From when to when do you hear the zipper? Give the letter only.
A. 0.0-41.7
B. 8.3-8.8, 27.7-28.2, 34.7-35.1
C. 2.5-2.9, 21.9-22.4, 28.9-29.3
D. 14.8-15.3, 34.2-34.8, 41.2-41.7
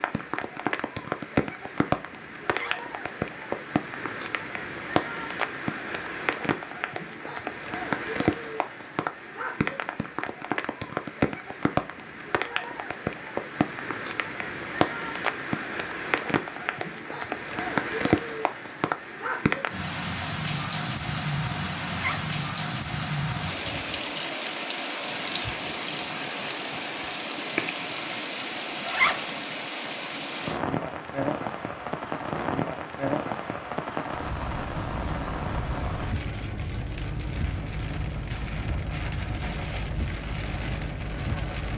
C.